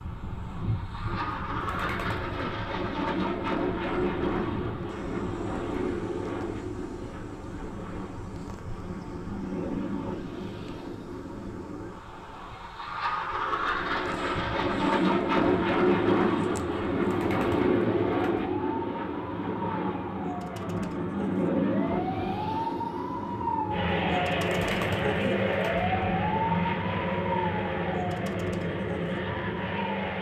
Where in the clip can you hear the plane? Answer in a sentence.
You can hear the plane from 0.0 to 30.1 s.